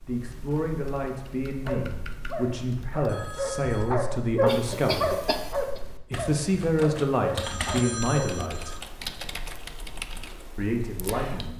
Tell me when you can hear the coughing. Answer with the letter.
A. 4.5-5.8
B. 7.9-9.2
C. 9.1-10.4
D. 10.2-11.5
A.